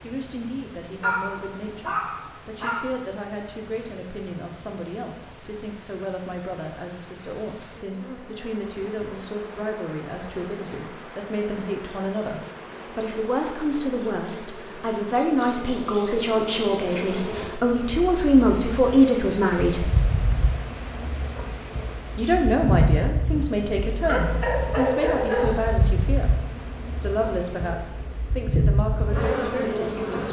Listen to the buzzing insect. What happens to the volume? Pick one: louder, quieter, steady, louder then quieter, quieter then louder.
louder.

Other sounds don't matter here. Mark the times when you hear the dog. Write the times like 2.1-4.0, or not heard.
1.0-2.8, 24.1-25.6.